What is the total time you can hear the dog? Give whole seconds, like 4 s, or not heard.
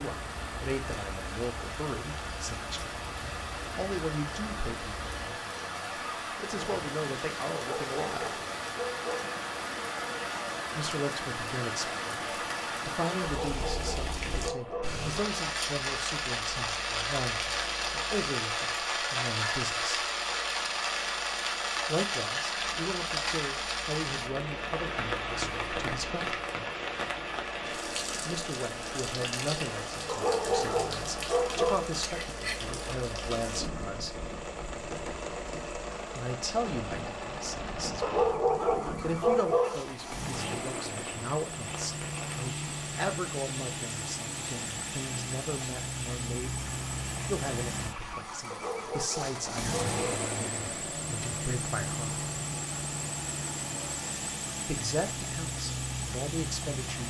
9 s.